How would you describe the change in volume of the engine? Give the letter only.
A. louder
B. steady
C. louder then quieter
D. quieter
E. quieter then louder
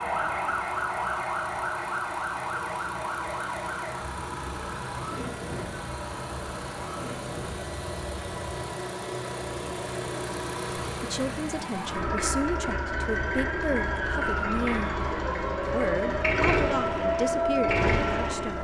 A.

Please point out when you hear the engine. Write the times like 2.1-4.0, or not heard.
0.0-18.5.